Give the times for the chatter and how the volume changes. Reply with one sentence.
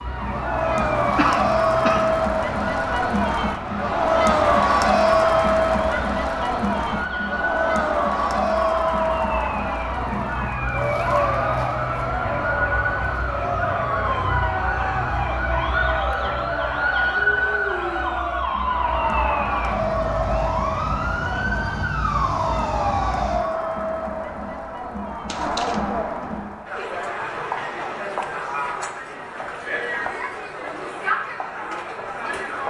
You can hear the chatter from 0.1 to 32.6 s, getting quieter.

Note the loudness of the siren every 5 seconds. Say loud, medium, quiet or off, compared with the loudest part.
medium, medium, loud, loud, loud, off, off.